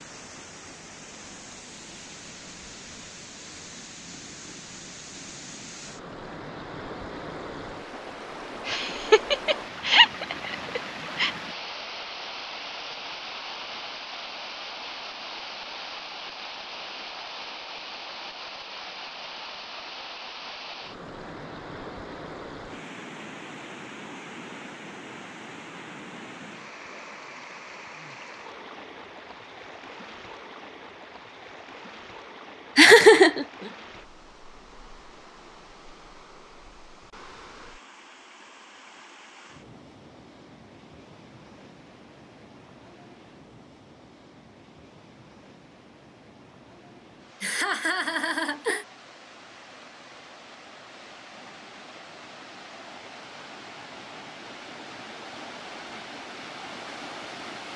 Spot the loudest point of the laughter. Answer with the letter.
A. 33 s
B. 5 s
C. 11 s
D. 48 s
A.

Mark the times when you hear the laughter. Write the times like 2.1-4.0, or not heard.
8.7-11.3, 32.8-33.5, 47.4-48.9.